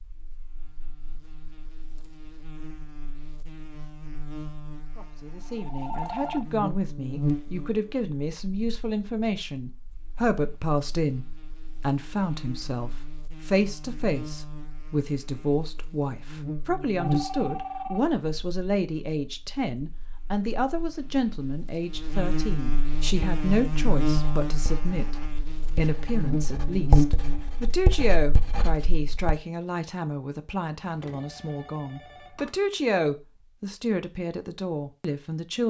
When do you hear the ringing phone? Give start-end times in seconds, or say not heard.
5.0-6.5, 16.9-18.0, 30.9-32.5.